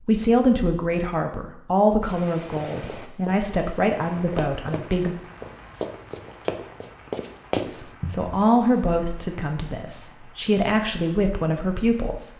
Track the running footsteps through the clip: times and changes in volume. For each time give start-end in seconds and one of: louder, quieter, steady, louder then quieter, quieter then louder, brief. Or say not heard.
2.5-8.3 louder.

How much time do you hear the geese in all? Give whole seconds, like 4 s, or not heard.
not heard.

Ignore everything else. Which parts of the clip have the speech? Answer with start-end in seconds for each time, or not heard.
0.0-5.2, 7.7-12.3.